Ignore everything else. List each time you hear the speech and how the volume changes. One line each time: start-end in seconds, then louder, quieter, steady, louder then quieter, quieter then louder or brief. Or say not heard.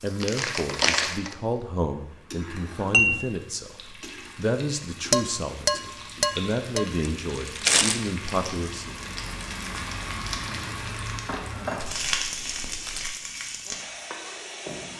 0.0-8.9 steady.